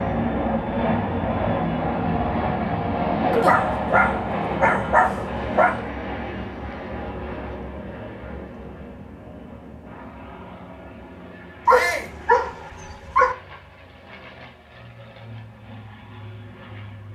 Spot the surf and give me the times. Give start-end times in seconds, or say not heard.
not heard.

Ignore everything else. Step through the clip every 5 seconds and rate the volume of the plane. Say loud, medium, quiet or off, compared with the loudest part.
loud, medium, quiet, quiet.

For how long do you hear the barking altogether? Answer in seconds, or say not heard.
4 s.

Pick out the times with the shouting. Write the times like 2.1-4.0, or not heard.
11.7-12.2.